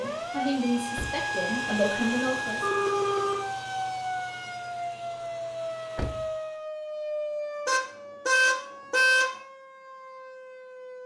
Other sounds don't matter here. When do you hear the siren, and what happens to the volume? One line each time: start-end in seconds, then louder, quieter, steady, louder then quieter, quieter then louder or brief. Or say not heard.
0.0-11.0 quieter.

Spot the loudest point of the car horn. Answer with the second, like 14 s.
9 s.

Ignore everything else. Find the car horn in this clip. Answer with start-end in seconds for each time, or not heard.
2.6-3.5, 7.7-9.3.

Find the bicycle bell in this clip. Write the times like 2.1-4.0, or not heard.
not heard.